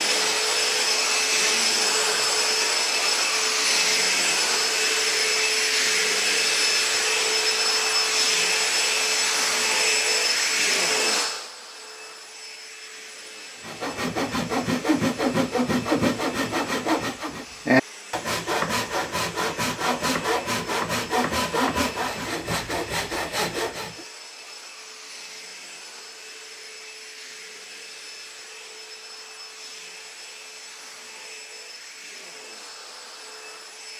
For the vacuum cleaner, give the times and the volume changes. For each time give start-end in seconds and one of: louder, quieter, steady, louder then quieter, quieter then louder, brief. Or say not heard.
0.0-33.9 quieter.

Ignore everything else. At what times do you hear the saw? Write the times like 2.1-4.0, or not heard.
13.6-24.1.